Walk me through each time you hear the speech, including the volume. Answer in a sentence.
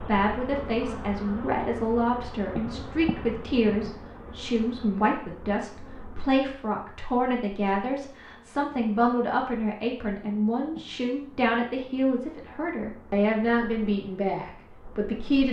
The speech can be heard from 0.1 to 15.4 s, at a steady volume.